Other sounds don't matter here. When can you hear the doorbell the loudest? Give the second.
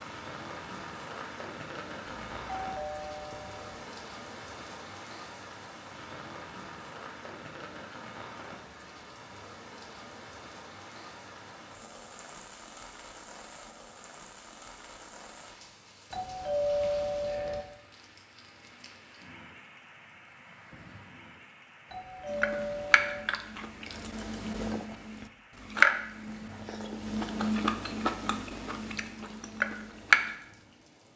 17 s.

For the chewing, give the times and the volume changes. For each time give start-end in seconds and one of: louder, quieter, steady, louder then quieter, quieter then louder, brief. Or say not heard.
22.2-30.3 louder then quieter.